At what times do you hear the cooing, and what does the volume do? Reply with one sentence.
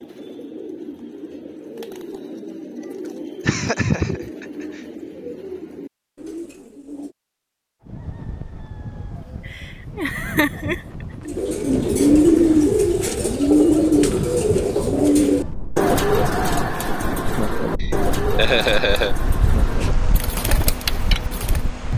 You can hear the cooing from 0.0 to 7.1 s, at a steady volume; and from 11.2 to 21.7 s, getting quieter.